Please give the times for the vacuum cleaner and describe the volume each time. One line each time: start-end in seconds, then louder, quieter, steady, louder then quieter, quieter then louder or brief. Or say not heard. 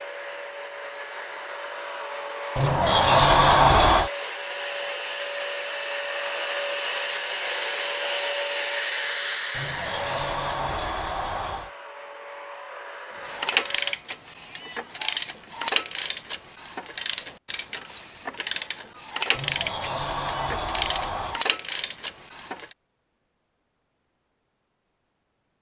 0.0-13.9 louder then quieter.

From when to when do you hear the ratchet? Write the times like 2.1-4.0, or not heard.
13.2-22.8.